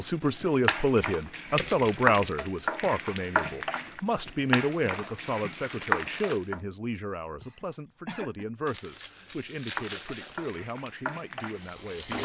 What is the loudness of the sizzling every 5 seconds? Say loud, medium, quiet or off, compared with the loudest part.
loud, loud, medium.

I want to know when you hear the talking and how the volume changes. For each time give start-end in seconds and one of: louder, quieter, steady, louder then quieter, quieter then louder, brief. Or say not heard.
0.0-12.2 quieter.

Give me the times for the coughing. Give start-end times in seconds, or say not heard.
7.4-8.4.